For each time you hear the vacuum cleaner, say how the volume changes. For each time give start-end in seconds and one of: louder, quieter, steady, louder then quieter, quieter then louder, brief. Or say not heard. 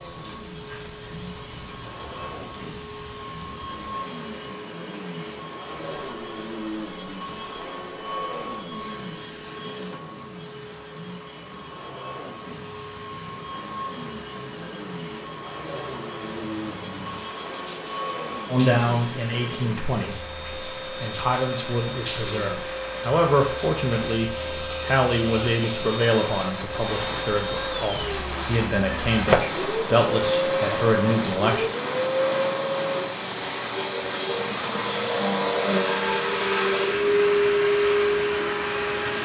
0.0-39.2 louder.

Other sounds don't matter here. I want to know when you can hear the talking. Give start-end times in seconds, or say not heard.
18.4-31.6.